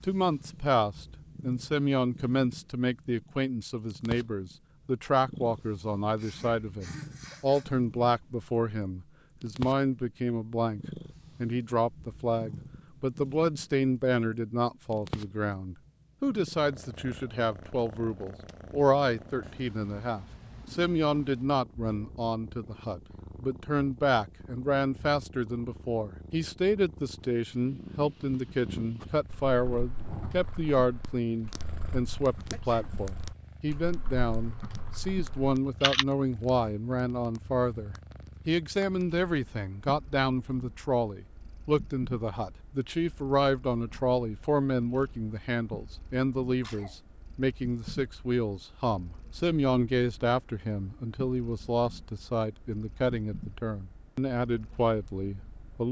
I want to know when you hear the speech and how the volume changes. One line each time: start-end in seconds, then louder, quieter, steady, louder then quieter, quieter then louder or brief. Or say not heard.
0.0-55.8 steady.